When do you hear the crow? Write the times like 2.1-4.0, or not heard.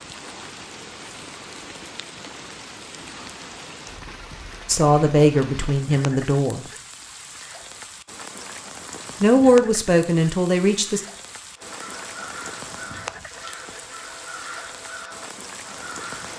11.6-16.3.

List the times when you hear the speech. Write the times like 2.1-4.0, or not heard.
4.7-6.7, 9.2-11.0.